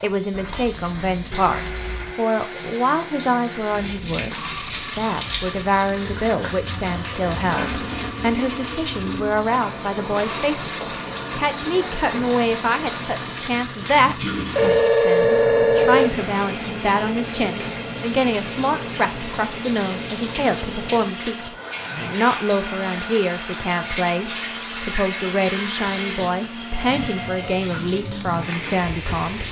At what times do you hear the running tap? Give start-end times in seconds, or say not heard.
0.0-29.4.